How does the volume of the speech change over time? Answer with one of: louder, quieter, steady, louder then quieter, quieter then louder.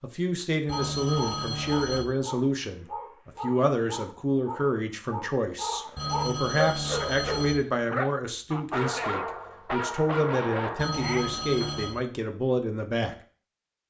steady.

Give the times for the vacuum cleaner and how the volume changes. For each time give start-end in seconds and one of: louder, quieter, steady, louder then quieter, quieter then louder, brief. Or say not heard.
not heard.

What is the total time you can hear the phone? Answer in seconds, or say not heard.
4 s.